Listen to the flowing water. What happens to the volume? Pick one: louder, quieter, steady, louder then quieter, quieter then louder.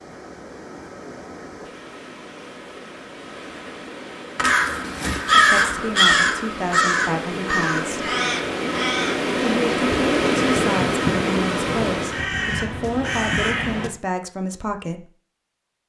louder.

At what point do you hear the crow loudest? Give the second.
5 s.